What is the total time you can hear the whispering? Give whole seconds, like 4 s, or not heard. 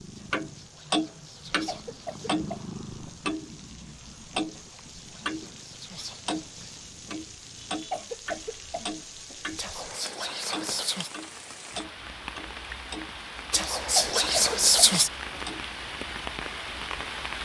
8 s.